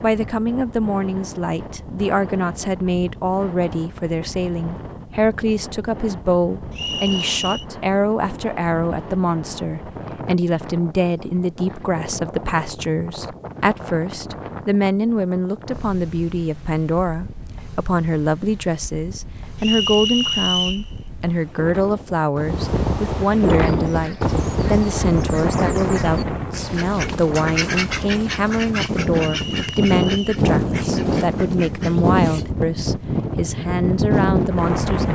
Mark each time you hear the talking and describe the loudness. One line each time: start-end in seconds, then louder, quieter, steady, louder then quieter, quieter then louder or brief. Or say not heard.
0.0-35.0 steady.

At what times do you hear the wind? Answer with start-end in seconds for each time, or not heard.
0.0-35.0.